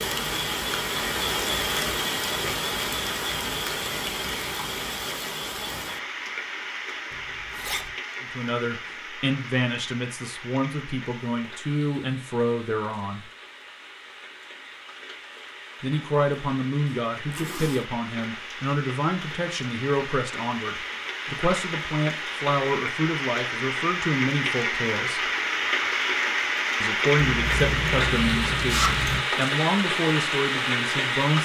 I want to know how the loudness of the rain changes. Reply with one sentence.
The volume of the rain goes down, then up.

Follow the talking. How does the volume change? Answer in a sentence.
The volume of the talking stays about the same.